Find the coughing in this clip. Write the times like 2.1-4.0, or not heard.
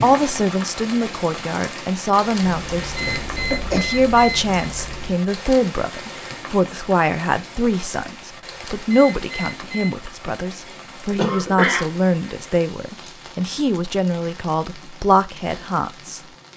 3.0-3.9, 11.1-11.8.